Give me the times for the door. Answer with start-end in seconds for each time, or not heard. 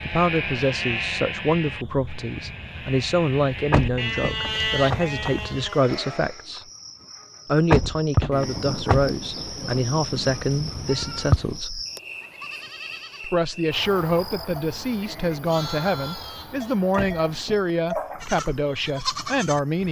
3.7-5.0, 7.7-9.2, 16.9-17.8.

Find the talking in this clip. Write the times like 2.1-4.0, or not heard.
0.0-6.7, 7.5-11.8, 13.2-19.8.